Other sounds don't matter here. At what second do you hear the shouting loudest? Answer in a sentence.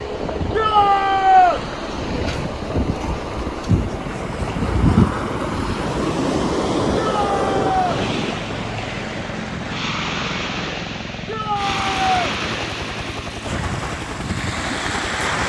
The volume of the shouting peaks at 1 second.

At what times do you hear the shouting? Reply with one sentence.
The shouting can be heard from 0.6 to 1.6 s, from 7.0 to 8.0 s and from 11.2 to 12.3 s.